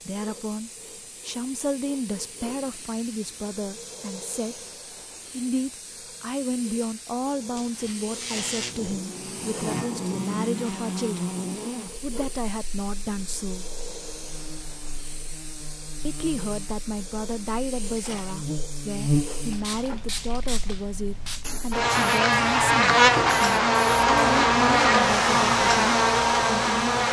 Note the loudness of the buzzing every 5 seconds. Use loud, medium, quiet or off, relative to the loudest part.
off, quiet, quiet, quiet, loud, loud.